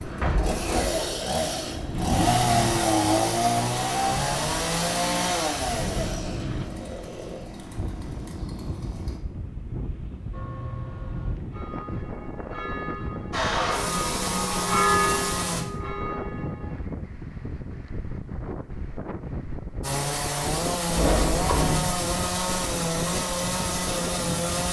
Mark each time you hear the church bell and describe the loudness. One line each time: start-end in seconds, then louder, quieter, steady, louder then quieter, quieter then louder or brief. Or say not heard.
10.3-16.8 louder then quieter.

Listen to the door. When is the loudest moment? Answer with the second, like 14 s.
21 s.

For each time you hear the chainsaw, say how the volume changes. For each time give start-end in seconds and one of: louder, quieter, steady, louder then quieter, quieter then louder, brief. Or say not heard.
0.0-9.2 louder then quieter
13.3-15.7 brief
19.8-24.6 steady.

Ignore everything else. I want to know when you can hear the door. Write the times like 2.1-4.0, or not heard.
0.2-0.9, 20.9-22.0.